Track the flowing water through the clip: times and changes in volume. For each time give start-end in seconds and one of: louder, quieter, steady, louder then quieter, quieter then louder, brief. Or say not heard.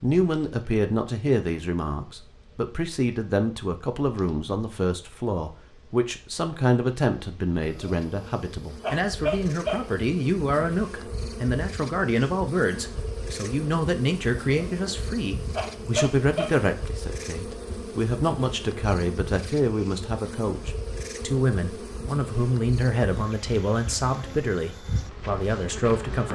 not heard.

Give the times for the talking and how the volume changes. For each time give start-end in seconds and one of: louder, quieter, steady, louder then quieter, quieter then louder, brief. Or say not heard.
0.0-26.2 steady.